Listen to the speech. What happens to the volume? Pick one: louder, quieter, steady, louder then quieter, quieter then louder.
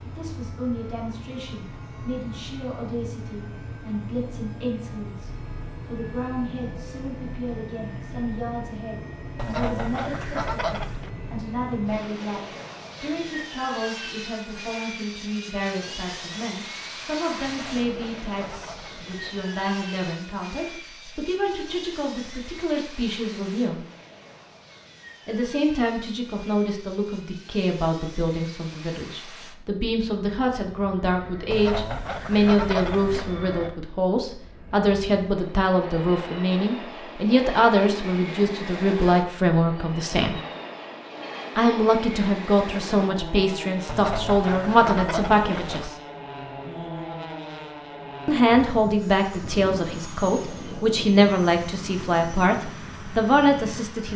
louder.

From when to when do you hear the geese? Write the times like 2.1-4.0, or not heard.
9.3-11.1, 17.4-19.4, 31.5-33.4, 43.9-45.9.